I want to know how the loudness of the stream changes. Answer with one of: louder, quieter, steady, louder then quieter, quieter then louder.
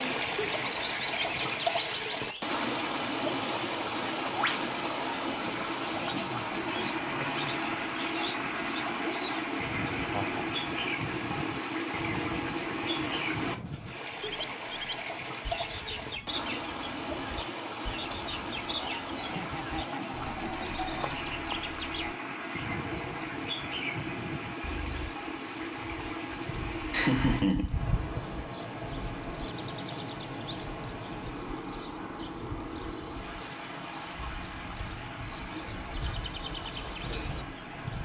quieter.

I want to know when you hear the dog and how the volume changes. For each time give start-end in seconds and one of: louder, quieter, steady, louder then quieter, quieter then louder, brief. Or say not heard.
not heard.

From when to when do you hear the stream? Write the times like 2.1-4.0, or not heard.
0.0-38.0.